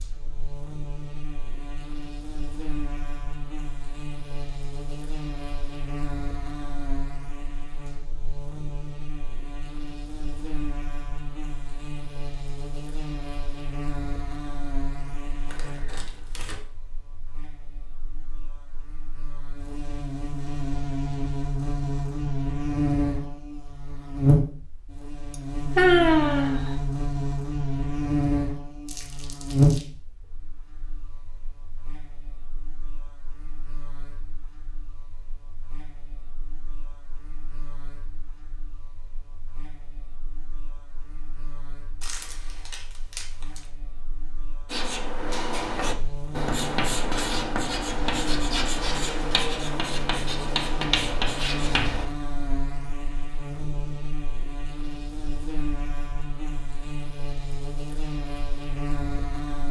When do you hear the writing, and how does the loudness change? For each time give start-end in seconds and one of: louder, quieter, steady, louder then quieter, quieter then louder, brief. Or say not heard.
44.7-52.0 steady.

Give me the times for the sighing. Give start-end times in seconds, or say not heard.
25.3-26.7.